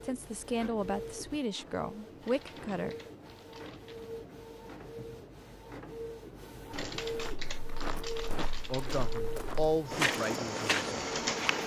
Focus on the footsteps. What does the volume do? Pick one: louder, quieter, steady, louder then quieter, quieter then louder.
louder.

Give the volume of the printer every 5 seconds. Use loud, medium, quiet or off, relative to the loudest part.
medium, medium, loud.